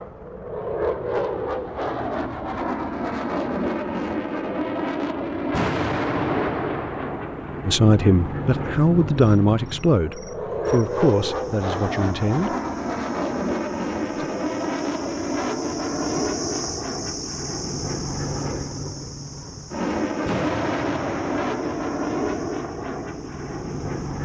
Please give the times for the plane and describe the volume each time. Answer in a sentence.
The plane can be heard from 0.0 to 24.2 s, at a steady volume.